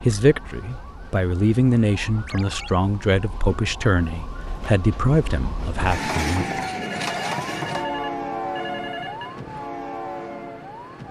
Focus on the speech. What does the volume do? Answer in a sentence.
The loudness of the speech stays about the same.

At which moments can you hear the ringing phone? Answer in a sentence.
The ringing phone can be heard from 2.2 to 2.7 s and from 6.8 to 9.3 s.